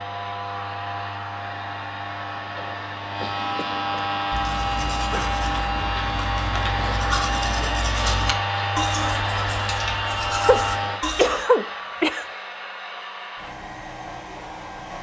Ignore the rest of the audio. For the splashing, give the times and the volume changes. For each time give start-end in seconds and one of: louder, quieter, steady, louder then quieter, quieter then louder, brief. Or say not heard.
not heard.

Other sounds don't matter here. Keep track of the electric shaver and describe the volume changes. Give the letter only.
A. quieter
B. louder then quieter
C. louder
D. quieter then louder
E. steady
C.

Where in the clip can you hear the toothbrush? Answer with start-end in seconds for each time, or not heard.
4.0-11.4.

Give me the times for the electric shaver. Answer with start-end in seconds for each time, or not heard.
0.0-11.1.